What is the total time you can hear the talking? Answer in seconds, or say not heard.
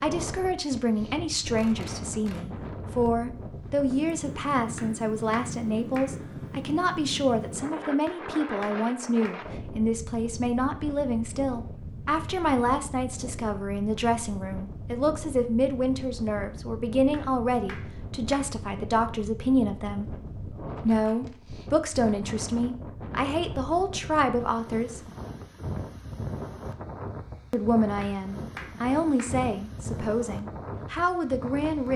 29 s.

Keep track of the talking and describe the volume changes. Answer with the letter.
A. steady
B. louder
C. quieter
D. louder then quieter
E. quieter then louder
A.